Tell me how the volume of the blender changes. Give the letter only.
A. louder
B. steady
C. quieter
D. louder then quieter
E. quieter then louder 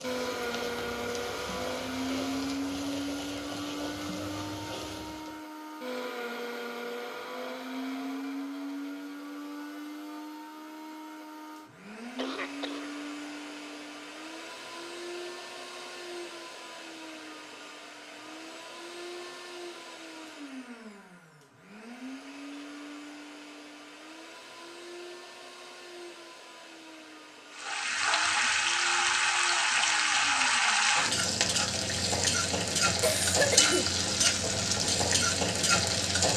C.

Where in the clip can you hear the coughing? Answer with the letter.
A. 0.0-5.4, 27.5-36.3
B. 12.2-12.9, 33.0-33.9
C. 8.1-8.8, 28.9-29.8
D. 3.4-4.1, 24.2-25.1
B.